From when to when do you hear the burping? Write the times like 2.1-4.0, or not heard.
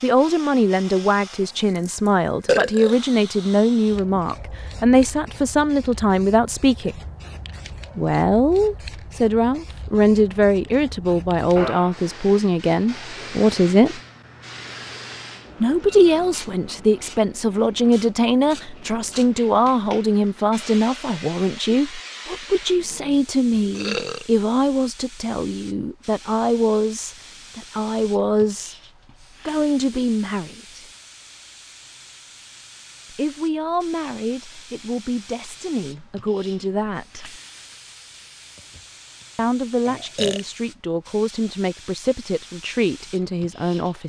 1.8-3.0, 23.0-24.2, 39.9-40.4.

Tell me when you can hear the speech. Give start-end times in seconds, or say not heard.
0.0-7.0, 8.0-14.0, 15.6-28.8, 29.4-30.9, 33.1-37.4, 39.4-44.0.